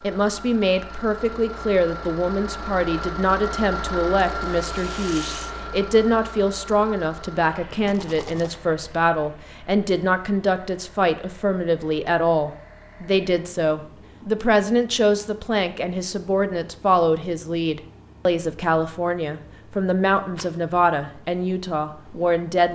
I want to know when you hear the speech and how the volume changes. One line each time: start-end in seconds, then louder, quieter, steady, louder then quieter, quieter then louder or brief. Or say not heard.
0.0-22.6 steady.